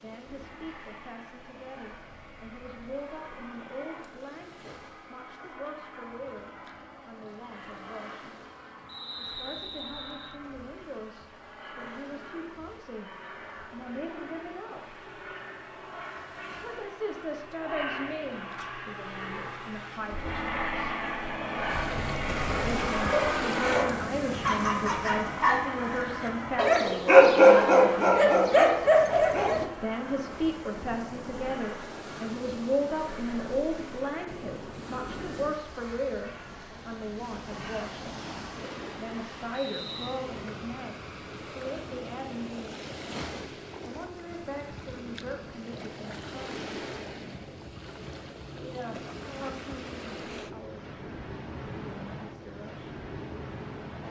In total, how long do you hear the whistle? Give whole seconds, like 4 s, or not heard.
2 s.